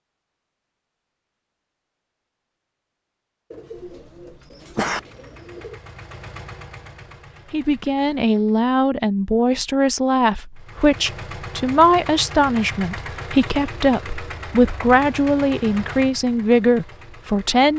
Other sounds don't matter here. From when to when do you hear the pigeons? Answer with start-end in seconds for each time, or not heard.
3.5-5.8.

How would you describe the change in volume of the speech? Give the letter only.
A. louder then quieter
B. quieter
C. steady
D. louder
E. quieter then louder
C.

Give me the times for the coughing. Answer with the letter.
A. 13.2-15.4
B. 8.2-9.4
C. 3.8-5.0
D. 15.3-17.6
C.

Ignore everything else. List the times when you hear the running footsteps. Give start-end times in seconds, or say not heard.
not heard.